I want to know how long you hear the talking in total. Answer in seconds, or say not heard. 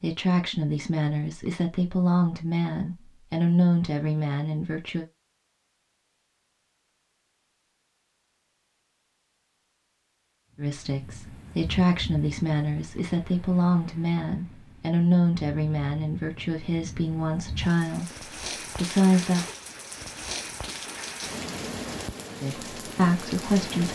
15 s.